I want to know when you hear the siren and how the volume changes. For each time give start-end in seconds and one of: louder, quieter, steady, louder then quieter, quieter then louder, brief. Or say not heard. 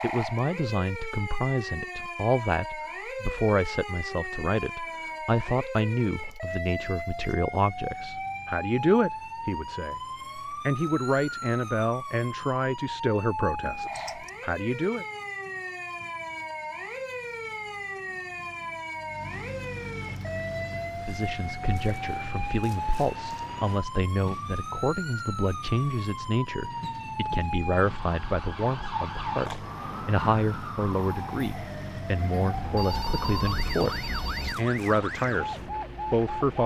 0.0-36.6 steady.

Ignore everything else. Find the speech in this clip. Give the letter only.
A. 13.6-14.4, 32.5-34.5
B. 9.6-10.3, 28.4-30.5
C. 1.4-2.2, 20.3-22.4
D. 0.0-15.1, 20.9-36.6
D.